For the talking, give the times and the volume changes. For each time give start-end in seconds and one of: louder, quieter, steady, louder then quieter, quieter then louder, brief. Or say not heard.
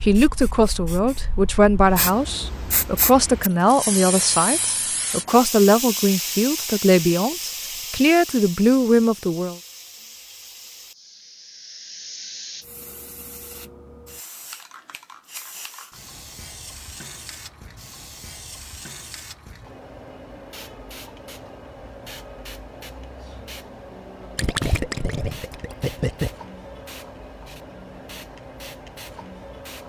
0.0-9.6 steady.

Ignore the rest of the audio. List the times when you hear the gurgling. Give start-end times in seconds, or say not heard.
24.4-26.3.